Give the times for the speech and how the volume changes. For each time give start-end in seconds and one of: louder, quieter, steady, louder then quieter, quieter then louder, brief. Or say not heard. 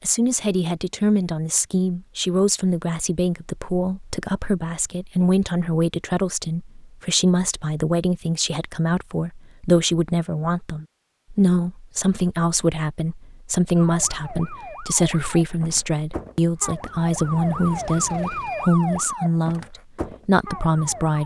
0.0-21.2 steady.